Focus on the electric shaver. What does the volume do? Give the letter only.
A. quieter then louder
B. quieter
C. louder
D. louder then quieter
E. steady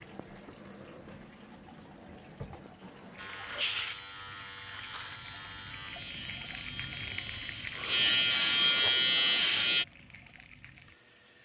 C.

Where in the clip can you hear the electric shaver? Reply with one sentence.
The electric shaver can be heard from 3.1 to 9.8 s.